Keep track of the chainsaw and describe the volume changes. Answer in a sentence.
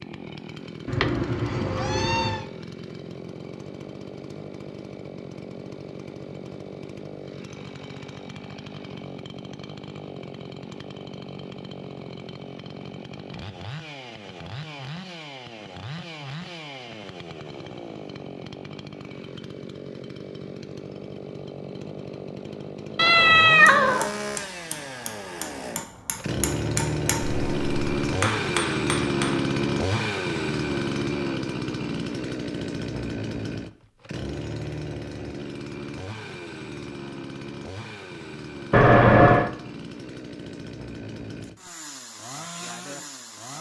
The volume of the chainsaw goes up, then down.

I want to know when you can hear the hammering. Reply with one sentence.
You can hear the hammering from 23.6 to 29.4 s.